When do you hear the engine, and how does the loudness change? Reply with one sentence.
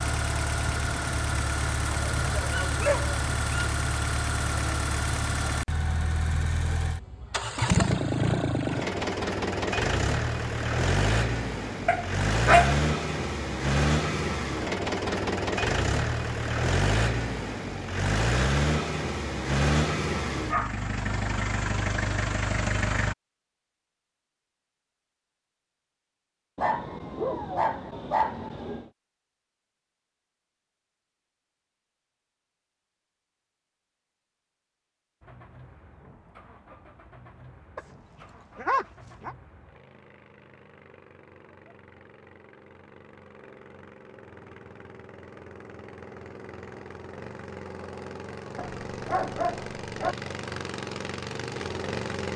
You can hear the engine from 0.0 to 23.1 s, at a steady volume; and from 35.2 to 52.3 s, getting louder.